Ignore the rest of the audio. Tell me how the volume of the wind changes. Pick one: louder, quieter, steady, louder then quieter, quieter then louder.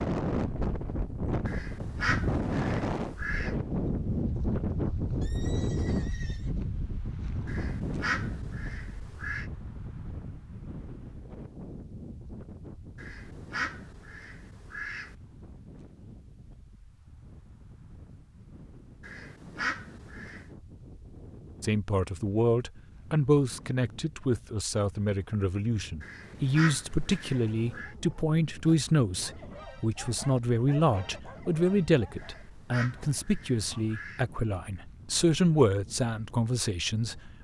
quieter.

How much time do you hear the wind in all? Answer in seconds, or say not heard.
37 s.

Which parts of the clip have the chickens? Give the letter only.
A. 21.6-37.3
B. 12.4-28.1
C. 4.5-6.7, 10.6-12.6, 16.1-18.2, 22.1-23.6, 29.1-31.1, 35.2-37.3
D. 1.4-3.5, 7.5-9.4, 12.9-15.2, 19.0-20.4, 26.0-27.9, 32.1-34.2
D.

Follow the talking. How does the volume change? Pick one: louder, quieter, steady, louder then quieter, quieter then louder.
steady.